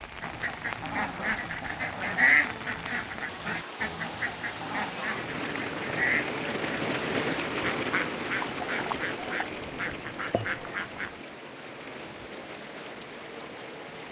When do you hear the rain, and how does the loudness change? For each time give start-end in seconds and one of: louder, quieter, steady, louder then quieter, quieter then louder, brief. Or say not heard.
0.0-14.0 louder then quieter.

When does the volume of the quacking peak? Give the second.
2 s.